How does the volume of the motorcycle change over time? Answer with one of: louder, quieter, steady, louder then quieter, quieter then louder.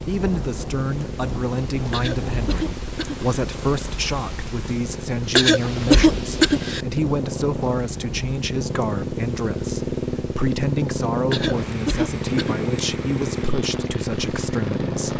louder.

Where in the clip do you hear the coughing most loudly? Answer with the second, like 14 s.
6 s.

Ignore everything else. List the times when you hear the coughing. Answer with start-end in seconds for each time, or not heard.
1.9-3.2, 5.3-6.8, 11.3-12.7.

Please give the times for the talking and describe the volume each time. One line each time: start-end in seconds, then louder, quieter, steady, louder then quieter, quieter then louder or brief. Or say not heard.
0.1-15.1 steady.